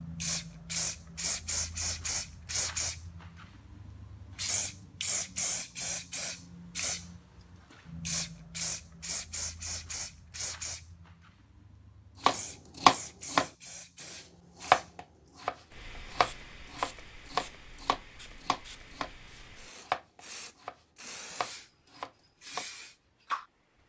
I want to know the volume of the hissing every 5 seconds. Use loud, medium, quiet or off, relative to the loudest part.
loud, loud, medium, quiet, medium.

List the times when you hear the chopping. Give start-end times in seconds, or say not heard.
12.2-13.4, 14.1-22.6.